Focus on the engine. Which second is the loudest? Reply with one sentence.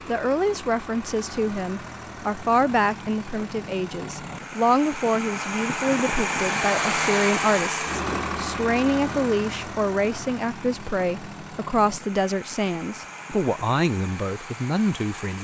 The loudest moment of the engine is at 7 seconds.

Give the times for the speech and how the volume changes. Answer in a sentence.
The speech can be heard from 0.1 to 15.3 s, at a steady volume.